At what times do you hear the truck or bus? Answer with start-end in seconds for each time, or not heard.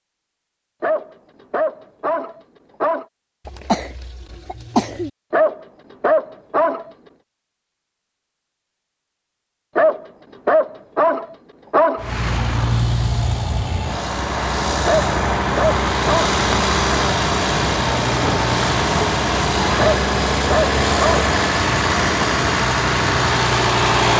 11.9-24.1.